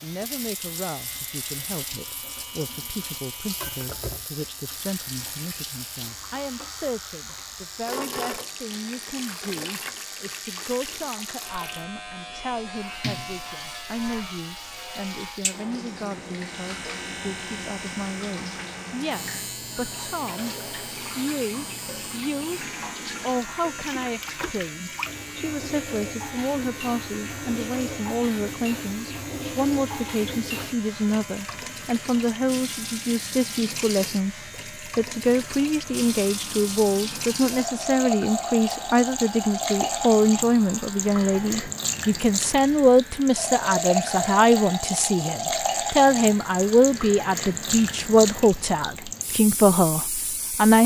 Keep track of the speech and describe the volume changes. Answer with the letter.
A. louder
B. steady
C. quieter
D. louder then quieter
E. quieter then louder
A.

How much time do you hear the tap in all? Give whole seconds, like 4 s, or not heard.
51 s.